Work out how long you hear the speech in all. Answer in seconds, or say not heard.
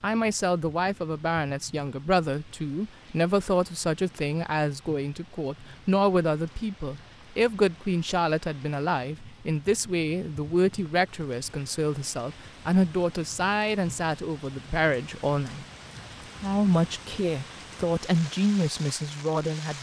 19 s.